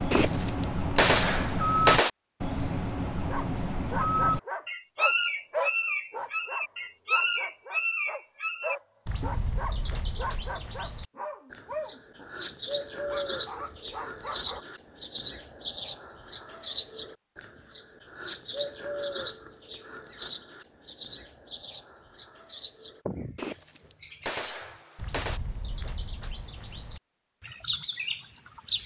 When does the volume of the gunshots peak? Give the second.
2 s.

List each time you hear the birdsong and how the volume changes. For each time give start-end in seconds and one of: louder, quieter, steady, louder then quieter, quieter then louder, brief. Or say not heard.
0.0-28.8 quieter.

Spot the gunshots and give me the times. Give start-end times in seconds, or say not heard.
0.1-2.1, 23.4-25.4.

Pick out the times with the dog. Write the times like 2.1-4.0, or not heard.
3.2-14.7.